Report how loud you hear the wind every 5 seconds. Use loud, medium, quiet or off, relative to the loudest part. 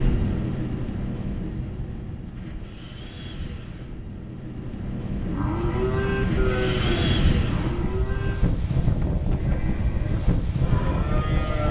medium, loud, loud.